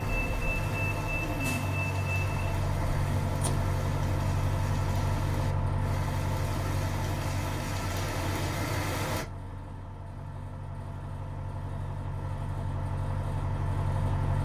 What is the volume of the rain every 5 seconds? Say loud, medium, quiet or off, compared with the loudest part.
medium, loud, off.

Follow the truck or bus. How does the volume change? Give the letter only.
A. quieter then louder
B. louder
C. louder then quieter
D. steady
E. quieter
A.